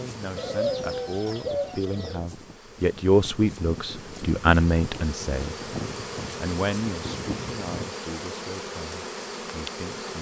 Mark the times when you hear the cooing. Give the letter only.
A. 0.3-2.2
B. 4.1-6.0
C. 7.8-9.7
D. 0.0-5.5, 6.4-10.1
A.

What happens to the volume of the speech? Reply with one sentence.
The volume of the speech goes up, then down.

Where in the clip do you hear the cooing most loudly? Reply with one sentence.
The loudest moment of the cooing is at 1 second.